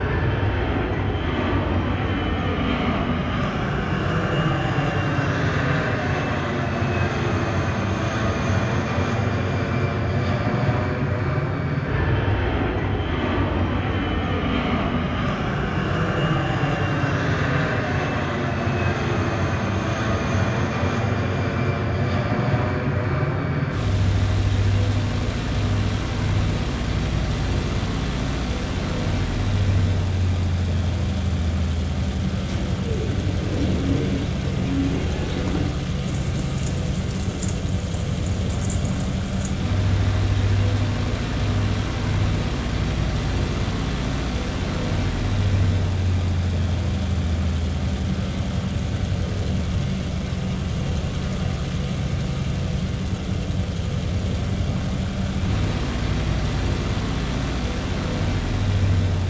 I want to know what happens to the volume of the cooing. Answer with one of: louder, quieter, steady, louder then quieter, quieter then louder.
quieter.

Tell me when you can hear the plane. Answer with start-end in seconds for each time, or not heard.
0.0-59.2.